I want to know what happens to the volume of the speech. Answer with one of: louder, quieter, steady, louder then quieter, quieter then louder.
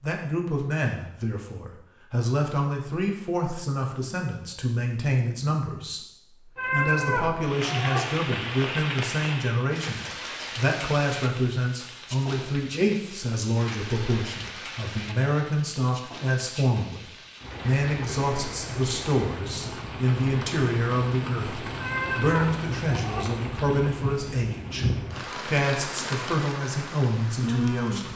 steady.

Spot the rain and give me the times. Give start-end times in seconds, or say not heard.
7.4-28.1.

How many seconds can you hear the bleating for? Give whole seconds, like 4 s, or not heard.
3 s.